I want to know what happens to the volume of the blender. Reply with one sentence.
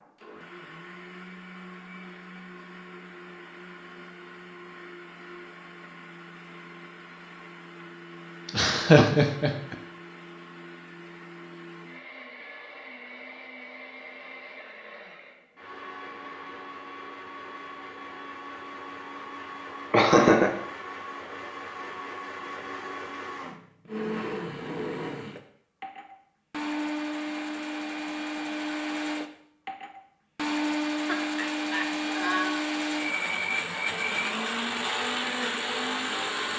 The loudness of the blender goes up.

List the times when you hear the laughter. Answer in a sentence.
The laughter can be heard from 8.4 to 9.8 s, from 19.9 to 20.6 s and from 31.1 to 32.6 s.